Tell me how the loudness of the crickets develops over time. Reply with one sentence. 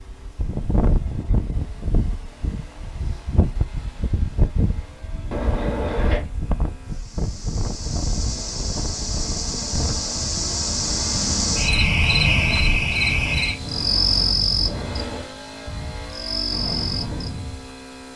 The loudness of the crickets goes up, then down.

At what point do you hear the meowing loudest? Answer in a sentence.
The volume of the meowing peaks at 6 seconds.